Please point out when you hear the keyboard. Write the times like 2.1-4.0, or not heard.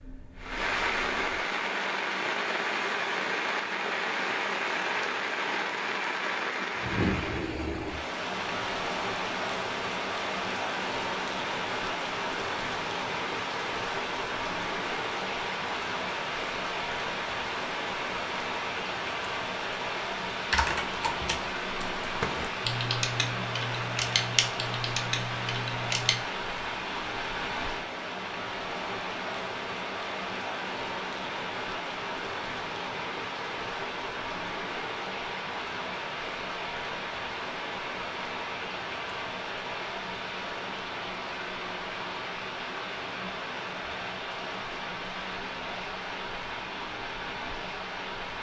20.5-26.2.